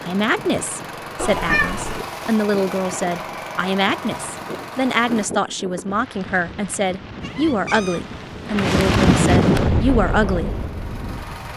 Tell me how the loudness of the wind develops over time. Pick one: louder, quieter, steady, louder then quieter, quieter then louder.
louder.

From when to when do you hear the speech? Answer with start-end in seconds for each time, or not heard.
0.0-10.6.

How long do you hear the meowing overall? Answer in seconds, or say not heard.
2 s.